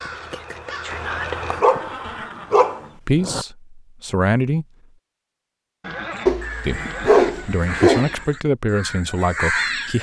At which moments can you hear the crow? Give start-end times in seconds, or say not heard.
0.0-1.6, 6.1-9.9.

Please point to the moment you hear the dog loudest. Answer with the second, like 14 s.
7 s.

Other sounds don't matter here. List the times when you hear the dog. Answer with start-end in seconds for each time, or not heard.
1.5-3.5, 6.2-8.2.